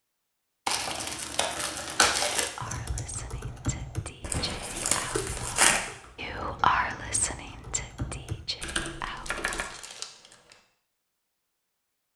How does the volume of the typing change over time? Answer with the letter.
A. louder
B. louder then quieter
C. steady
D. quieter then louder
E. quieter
D.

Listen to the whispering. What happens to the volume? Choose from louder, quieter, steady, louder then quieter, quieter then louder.
louder then quieter.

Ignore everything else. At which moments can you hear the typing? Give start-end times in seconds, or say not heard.
2.6-9.7.